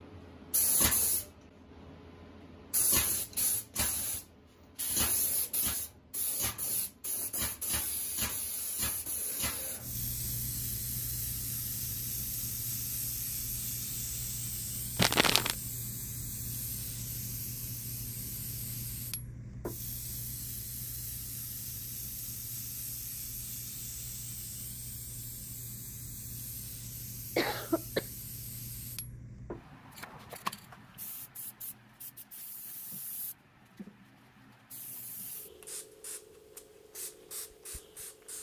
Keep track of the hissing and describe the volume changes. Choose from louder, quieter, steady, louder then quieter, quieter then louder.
quieter.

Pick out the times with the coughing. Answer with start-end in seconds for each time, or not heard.
27.4-28.1.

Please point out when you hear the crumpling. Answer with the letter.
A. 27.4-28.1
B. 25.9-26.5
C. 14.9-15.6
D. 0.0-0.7
C.